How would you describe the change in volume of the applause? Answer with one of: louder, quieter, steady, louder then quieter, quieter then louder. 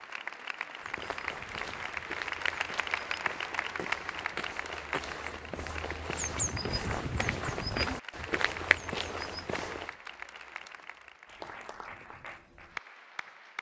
quieter.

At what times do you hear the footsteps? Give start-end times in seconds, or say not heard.
0.8-9.9.